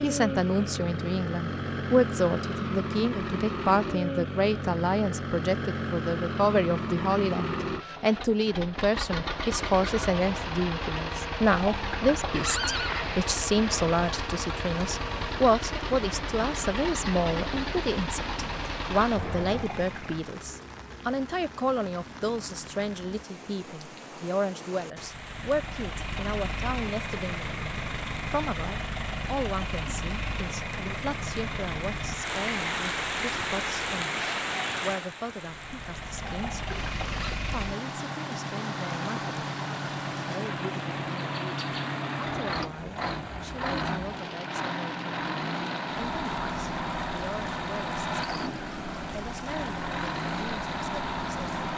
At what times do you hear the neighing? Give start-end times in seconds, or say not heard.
11.4-13.2, 19.5-20.2, 36.2-37.4.